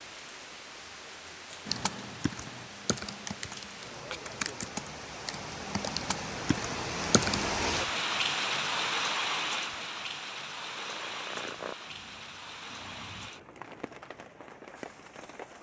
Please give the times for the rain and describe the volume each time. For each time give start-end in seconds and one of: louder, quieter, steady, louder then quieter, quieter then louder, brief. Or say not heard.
0.0-15.5 louder then quieter.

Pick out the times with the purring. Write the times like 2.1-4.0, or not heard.
10.7-13.3.